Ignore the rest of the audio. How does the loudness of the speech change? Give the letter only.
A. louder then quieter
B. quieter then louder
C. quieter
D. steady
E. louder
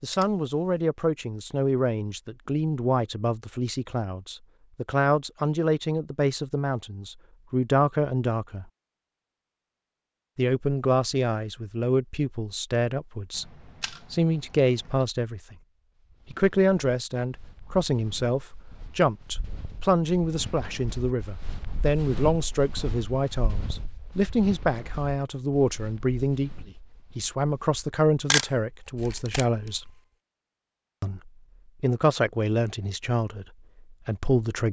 D.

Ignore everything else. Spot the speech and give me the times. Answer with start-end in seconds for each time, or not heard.
0.0-8.7, 10.3-15.6, 16.3-29.9, 31.0-34.6.